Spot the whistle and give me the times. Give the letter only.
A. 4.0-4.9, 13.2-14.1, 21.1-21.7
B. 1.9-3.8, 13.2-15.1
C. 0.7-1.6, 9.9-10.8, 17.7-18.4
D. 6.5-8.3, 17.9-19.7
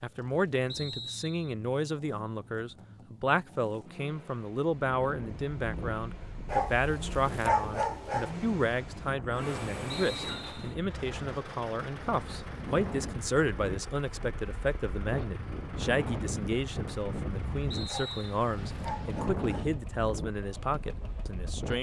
C.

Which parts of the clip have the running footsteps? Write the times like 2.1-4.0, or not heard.
not heard.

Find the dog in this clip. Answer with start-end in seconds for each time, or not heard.
6.5-8.3, 17.9-19.7.